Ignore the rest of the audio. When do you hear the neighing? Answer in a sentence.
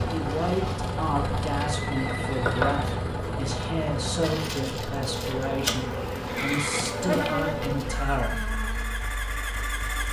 You can hear the neighing from 1.8 to 3.0 s and from 6.2 to 7.0 s.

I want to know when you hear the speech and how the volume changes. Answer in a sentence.
The speech can be heard from 0.1 to 8.5 s, at a steady volume.